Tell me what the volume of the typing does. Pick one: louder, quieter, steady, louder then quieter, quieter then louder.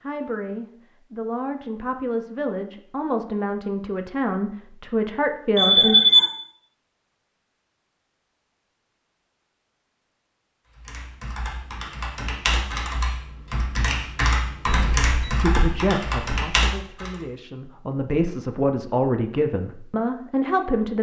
louder.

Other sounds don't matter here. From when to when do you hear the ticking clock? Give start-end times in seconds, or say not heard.
not heard.